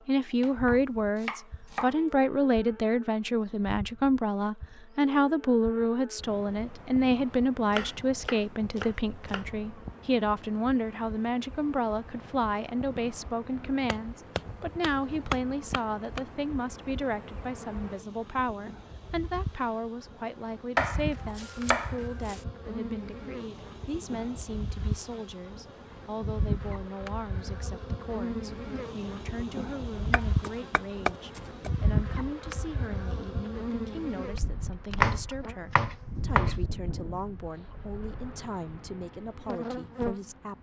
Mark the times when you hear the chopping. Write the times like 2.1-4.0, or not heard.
0.4-1.9, 7.7-9.4, 13.8-16.2, 20.8-22.4, 30.1-31.7, 35.0-36.5.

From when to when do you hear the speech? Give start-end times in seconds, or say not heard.
0.1-40.5.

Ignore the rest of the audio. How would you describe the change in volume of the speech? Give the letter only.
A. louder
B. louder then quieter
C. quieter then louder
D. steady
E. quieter
E.